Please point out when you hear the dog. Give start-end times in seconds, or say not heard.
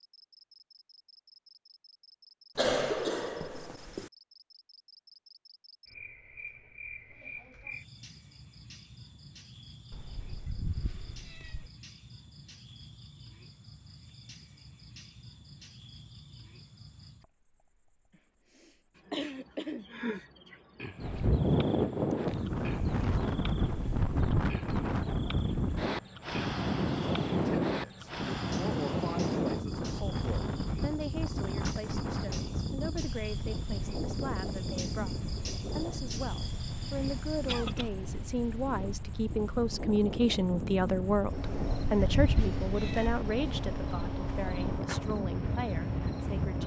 not heard.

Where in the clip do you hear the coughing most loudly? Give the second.
3 s.